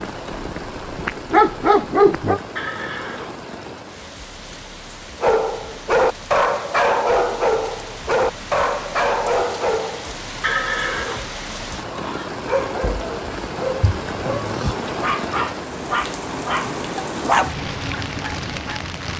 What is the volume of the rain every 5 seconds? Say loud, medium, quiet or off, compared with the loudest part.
medium, medium, loud, loud.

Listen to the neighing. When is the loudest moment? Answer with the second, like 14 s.
11 s.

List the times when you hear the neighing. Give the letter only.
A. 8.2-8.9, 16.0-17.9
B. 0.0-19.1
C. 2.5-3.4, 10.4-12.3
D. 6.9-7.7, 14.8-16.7
C.